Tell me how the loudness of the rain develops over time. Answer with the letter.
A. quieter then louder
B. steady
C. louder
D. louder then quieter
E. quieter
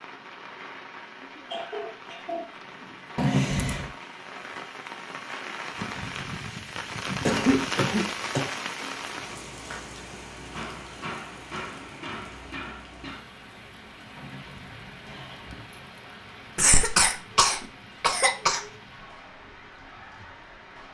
D.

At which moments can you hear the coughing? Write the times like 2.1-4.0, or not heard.
1.2-3.1, 7.2-8.5, 16.6-18.6.